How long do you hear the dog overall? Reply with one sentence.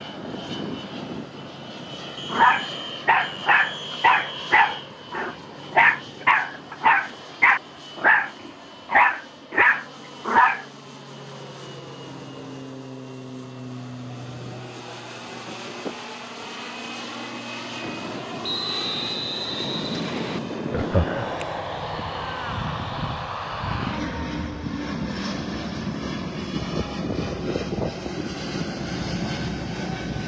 You can hear the dog for 8 seconds altogether.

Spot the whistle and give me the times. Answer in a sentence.
The whistle can be heard from 2.1 to 4.7 s and from 18.4 to 20.4 s.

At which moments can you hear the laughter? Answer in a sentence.
You can hear the laughter from 20.7 to 21.4 s.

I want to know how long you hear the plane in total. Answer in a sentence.
The plane can be heard for 30 seconds in total.